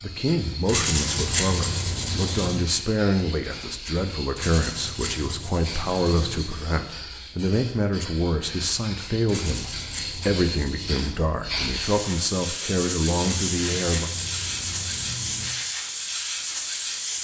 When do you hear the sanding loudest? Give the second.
1 s.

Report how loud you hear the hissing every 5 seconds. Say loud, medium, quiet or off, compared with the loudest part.
medium, medium, loud, loud.